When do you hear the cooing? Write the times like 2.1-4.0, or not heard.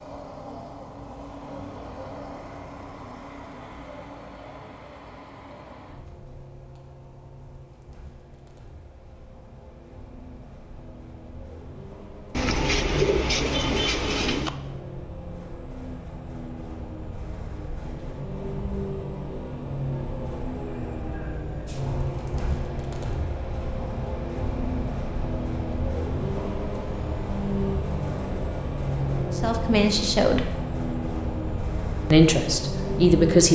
12.3-14.6.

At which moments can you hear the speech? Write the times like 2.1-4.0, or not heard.
29.4-30.5, 32.1-33.5.